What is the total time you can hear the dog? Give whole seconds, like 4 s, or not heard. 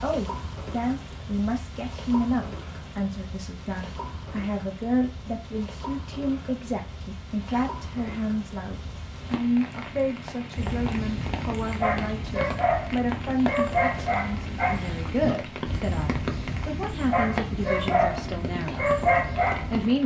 9 s.